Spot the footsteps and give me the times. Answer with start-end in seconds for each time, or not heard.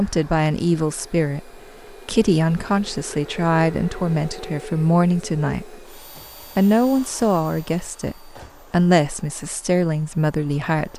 not heard.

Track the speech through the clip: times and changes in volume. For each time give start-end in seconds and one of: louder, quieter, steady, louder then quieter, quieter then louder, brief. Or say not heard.
0.0-10.9 steady.